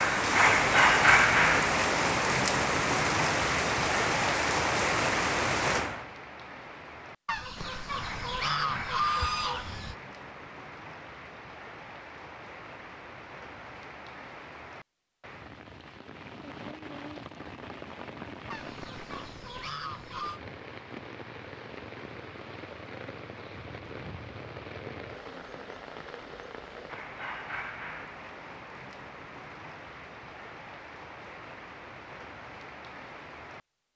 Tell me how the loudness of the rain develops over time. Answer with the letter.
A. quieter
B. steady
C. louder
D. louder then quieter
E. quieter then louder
A.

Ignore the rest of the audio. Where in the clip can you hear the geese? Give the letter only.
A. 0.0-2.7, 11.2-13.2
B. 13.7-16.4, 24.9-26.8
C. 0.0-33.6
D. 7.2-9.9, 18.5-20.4
D.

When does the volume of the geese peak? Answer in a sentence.
The loudest moment of the geese is at 9 seconds.